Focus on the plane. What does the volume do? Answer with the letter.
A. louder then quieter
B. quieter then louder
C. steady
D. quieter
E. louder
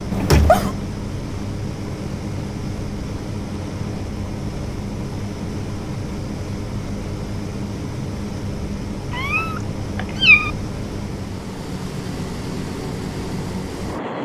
C.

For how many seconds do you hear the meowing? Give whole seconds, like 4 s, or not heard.
2 s.